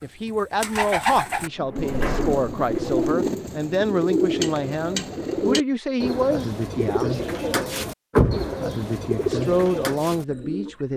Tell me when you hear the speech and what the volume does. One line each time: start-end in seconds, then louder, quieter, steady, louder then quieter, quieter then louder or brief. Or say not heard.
0.0-7.2 steady
9.2-10.9 brief.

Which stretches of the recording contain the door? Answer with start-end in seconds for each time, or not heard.
1.4-3.0, 8.2-8.7.